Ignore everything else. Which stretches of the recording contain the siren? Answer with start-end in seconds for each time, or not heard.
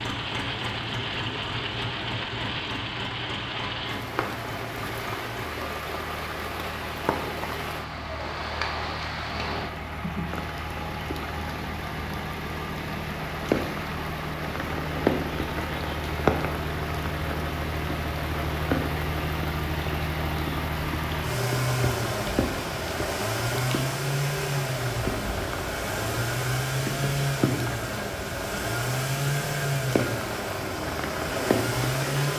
not heard.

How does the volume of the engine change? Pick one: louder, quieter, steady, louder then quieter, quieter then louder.
louder.